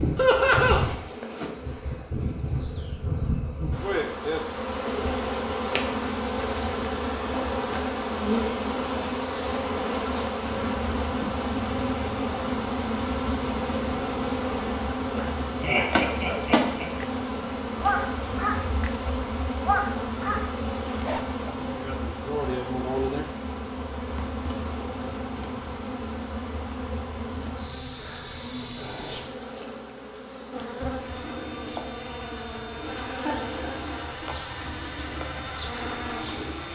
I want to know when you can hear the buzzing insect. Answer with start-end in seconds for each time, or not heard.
0.0-36.7.